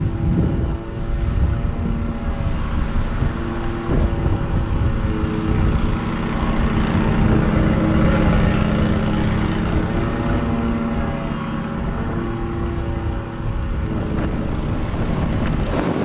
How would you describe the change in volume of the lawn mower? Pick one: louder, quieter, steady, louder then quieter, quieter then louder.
louder then quieter.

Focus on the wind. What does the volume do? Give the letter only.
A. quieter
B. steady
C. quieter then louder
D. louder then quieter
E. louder
B.